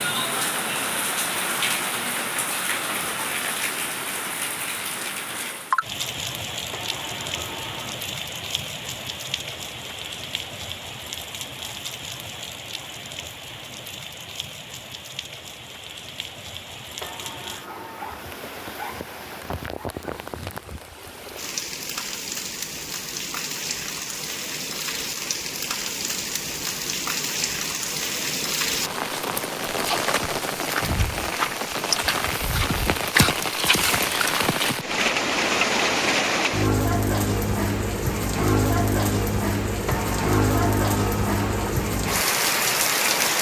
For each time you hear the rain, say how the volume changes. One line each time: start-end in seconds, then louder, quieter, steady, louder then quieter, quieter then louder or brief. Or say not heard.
0.0-43.3 quieter then louder.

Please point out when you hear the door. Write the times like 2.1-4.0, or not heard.
6.7-8.0, 17.0-18.3, 39.9-41.8.